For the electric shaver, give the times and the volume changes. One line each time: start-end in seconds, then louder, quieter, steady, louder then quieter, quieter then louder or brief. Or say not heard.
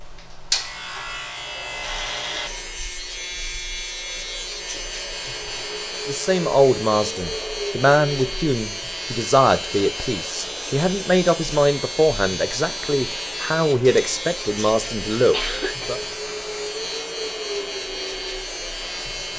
0.0-19.3 steady.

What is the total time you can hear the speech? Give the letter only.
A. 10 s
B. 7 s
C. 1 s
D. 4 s
A.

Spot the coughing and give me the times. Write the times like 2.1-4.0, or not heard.
14.8-15.9.